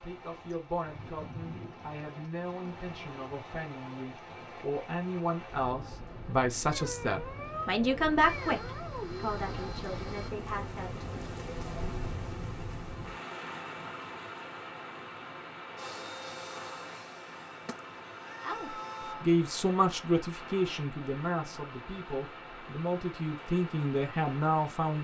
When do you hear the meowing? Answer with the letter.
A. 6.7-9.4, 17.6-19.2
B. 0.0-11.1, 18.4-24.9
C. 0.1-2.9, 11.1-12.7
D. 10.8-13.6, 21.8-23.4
A.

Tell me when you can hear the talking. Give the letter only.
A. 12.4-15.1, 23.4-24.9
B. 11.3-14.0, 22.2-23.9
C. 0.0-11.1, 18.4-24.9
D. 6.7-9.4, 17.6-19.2
C.